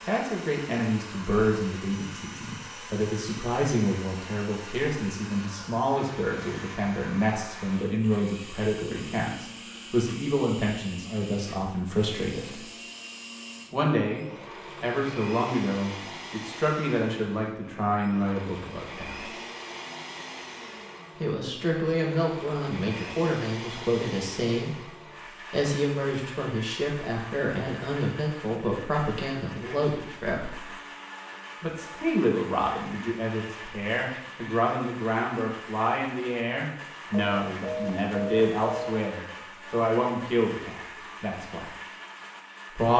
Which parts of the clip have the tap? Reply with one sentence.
You can't hear the tap here.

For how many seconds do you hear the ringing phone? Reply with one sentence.
You can hear the ringing phone for 2 seconds altogether.